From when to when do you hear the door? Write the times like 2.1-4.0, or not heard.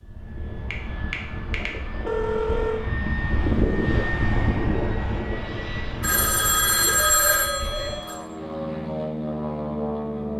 not heard.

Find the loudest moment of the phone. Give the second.
7 s.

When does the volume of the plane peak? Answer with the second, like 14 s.
4 s.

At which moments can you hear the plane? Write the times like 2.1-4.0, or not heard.
0.0-10.3.